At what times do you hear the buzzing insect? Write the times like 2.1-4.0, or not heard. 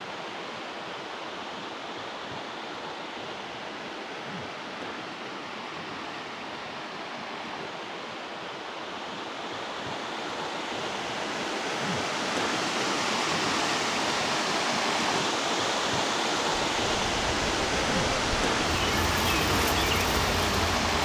16.5-21.0.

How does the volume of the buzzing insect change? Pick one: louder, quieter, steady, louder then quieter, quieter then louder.
louder.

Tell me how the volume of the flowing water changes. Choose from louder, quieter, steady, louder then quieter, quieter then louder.
louder.